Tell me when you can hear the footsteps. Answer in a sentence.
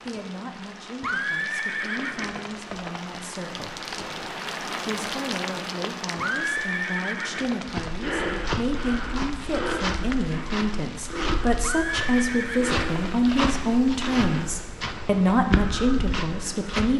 You can hear the footsteps from 7.7 to 16.9 s.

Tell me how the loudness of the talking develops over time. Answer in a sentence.
The loudness of the talking goes up.